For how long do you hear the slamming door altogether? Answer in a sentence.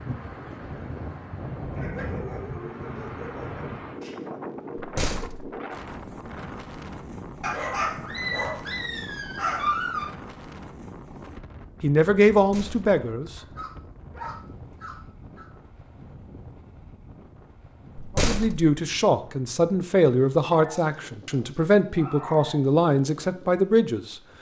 You can hear the slamming door for 2 seconds altogether.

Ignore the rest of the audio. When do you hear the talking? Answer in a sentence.
The talking can be heard from 11.8 to 13.3 s and from 18.1 to 24.1 s.